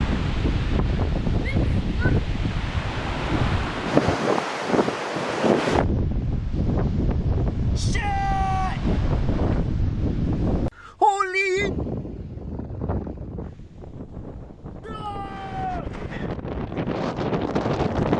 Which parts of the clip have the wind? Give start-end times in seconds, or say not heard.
0.0-18.1.